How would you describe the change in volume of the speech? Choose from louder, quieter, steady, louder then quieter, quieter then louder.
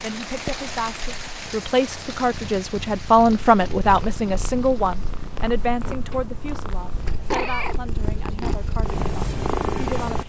louder then quieter.